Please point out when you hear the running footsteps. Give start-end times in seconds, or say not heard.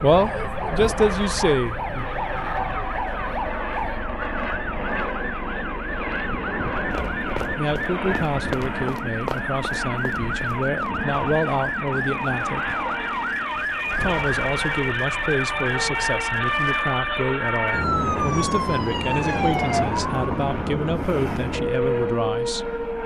6.9-10.9.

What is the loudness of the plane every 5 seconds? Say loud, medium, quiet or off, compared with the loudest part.
loud, loud, loud, medium, medium.